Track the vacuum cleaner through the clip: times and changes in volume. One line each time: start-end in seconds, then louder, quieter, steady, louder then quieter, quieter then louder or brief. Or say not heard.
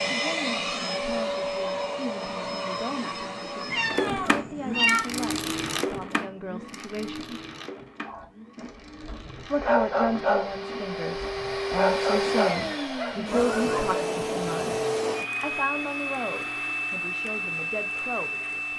0.0-18.7 quieter then louder.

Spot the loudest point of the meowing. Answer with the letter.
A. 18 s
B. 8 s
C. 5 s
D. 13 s
C.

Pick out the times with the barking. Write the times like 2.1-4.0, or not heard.
8.1-13.9.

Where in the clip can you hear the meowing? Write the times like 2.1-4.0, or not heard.
3.6-5.0.